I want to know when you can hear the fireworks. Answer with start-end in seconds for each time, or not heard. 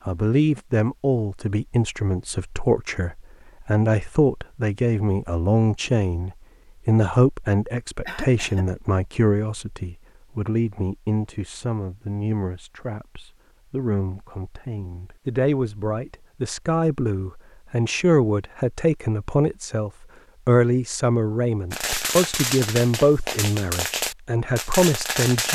21.7-25.5.